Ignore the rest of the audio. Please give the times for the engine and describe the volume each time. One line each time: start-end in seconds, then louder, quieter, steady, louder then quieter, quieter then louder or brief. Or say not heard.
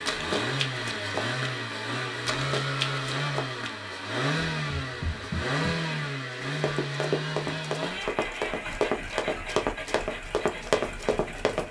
0.0-11.6 quieter.